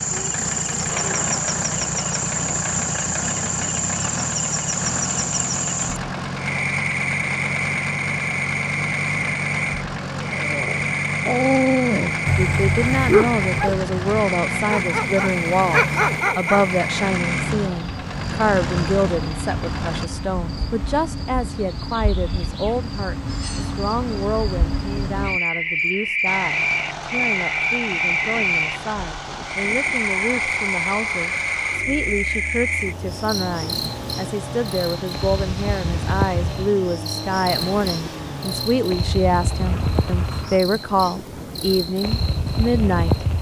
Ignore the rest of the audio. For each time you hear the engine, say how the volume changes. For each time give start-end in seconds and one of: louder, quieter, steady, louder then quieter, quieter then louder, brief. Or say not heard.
0.0-20.1 steady
26.2-40.6 steady.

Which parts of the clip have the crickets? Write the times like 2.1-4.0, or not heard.
0.0-43.3.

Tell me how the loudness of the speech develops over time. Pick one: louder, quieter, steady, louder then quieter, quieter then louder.
quieter then louder.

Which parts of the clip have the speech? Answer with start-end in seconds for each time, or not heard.
12.3-43.1.